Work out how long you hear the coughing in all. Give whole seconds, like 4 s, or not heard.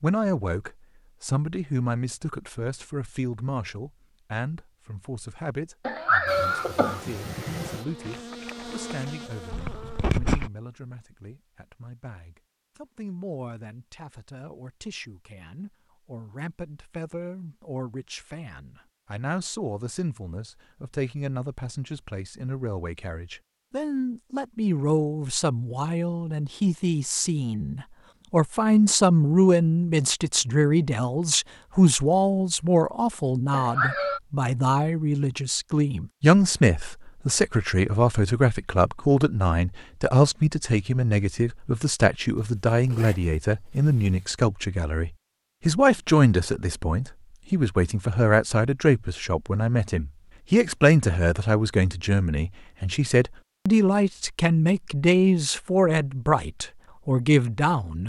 2 s.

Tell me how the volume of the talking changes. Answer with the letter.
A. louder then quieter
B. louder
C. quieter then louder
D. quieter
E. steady
B.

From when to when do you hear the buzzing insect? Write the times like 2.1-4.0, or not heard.
6.2-10.5.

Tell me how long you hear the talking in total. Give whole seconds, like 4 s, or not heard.
58 s.